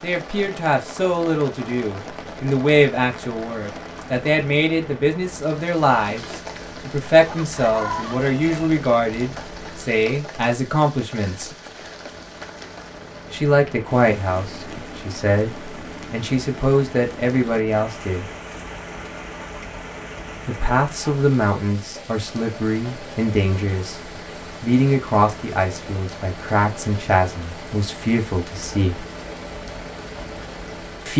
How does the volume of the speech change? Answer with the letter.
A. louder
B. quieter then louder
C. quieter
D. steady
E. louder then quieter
D.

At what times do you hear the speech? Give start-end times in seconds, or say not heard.
0.0-11.5, 13.3-18.2, 20.4-24.0, 24.6-29.0.